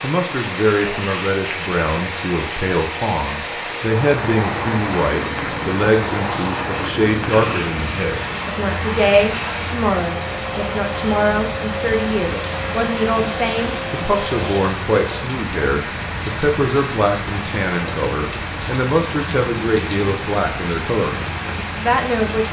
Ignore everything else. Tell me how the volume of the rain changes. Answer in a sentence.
The loudness of the rain stays about the same.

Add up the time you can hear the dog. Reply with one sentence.
You can't hear the dog here.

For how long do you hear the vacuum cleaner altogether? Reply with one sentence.
The vacuum cleaner can be heard for 15 seconds in total.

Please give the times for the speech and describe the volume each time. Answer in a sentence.
The speech can be heard from 0.0 to 22.4 s, at a steady volume.